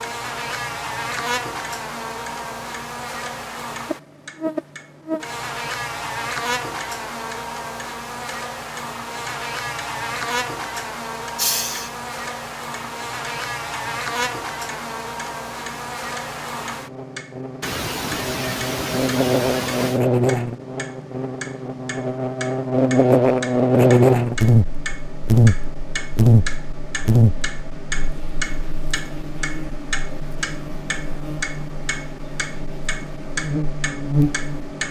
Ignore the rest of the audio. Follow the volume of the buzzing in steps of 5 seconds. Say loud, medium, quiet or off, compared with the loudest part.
medium, medium, medium, medium, loud, loud, medium.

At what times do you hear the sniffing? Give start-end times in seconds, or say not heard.
11.3-11.9, 17.6-20.0.